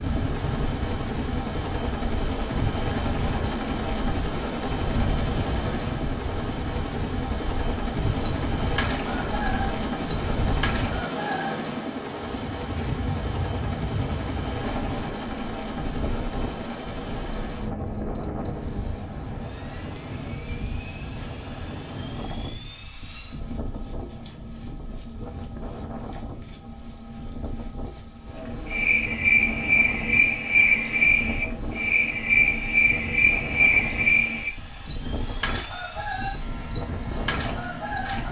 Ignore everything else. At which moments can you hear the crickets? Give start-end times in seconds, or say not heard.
8.0-38.2.